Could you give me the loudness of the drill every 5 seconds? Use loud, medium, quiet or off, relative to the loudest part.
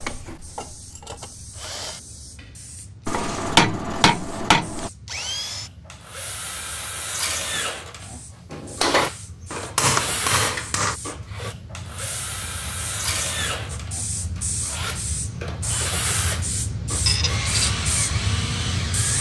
medium, loud, loud, loud.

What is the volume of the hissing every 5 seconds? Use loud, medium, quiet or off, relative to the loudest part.
quiet, quiet, medium, loud.